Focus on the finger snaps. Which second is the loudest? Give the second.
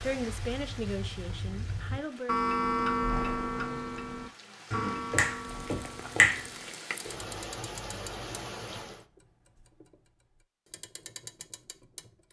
6 s.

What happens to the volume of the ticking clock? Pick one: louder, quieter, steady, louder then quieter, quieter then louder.
louder then quieter.